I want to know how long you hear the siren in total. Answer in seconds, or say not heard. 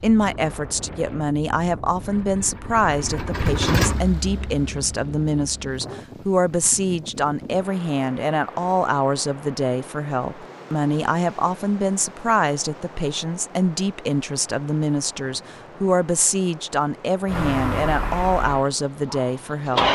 not heard.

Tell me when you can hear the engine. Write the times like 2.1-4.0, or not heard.
2.0-5.8, 17.3-19.8.